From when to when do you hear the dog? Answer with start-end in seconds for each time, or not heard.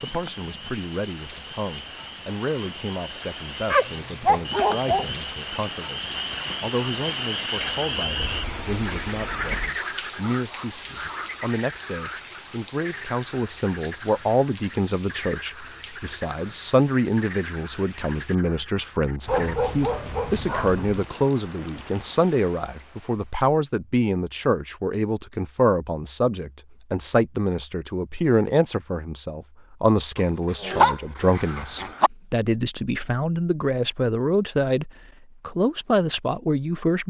3.7-5.0, 19.2-21.1, 30.1-32.1.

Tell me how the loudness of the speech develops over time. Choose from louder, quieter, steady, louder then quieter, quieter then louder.
louder.